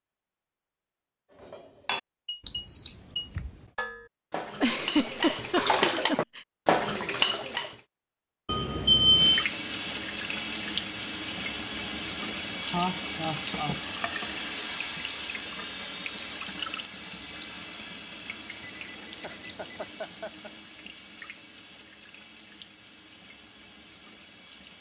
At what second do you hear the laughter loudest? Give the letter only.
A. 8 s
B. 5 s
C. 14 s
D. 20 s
B.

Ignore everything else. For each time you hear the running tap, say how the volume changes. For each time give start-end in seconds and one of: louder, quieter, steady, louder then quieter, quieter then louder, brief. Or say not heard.
9.1-24.7 quieter.